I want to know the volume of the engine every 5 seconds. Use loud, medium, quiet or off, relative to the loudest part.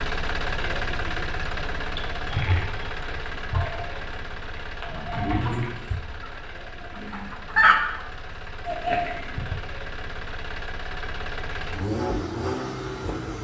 loud, medium, loud.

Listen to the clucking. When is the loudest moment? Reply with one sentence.
The volume of the clucking peaks at 8 seconds.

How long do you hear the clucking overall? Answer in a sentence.
You can hear the clucking for 7 seconds altogether.